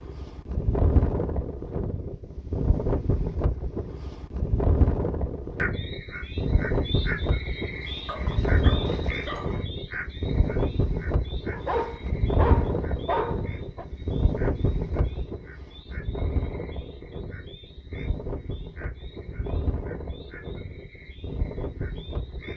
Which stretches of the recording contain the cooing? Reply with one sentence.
You can't hear the cooing here.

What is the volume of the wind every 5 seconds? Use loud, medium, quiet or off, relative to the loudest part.
loud, loud, loud, medium, medium.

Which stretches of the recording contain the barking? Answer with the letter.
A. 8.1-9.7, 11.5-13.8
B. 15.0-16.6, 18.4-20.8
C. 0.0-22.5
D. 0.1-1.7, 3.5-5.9
A.